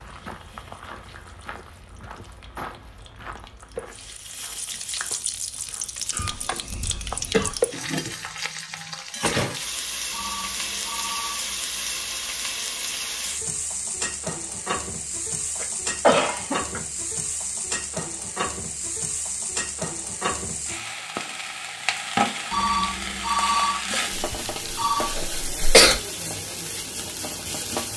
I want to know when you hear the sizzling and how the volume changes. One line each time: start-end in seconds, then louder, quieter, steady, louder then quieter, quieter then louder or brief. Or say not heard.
0.0-27.9 louder.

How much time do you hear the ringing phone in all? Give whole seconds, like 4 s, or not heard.
4 s.